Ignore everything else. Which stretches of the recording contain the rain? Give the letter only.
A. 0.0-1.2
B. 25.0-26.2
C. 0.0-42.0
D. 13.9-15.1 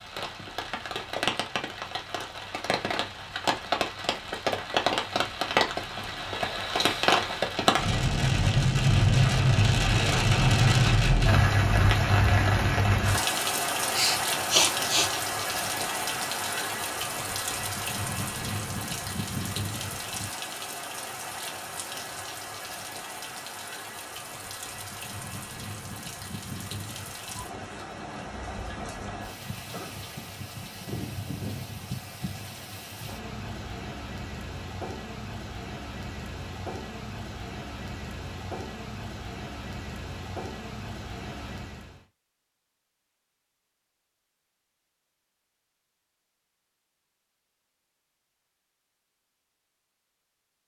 C.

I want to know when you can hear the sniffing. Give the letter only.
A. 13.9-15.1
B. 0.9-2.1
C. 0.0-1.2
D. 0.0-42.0
A.